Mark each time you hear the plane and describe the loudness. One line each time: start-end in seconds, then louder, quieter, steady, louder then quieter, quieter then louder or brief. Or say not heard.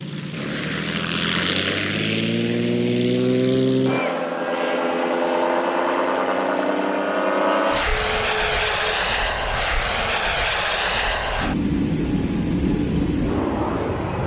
0.0-14.2 steady.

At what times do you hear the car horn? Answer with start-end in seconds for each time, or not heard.
7.8-8.9.